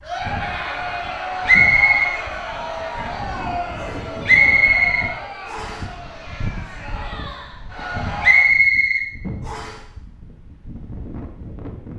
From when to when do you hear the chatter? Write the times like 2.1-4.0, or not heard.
0.0-8.5.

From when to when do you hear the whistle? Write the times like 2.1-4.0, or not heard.
1.4-2.1, 4.2-5.8, 8.2-9.8.